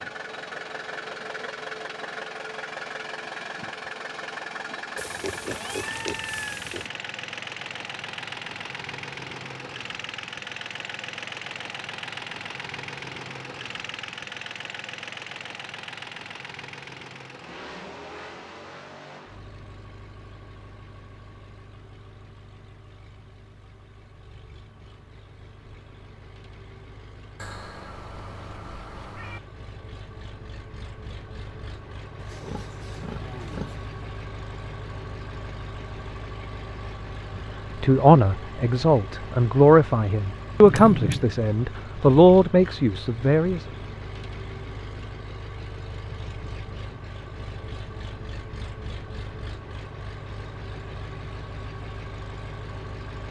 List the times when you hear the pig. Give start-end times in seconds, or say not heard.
5.0-6.9, 32.1-33.9.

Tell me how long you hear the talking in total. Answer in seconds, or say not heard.
6 s.